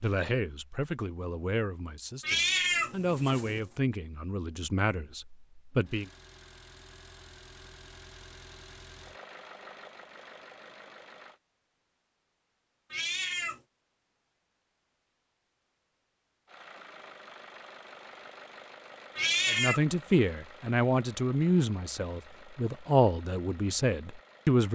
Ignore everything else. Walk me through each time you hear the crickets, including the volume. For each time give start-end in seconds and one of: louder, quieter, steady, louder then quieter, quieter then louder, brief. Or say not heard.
not heard.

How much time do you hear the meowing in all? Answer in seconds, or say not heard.
3 s.